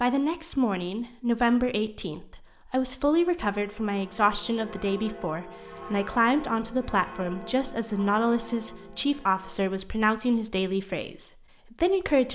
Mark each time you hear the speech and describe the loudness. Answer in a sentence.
You can hear the speech from 0.0 to 12.3 s, at a steady volume.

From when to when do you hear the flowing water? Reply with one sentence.
You can't hear the flowing water here.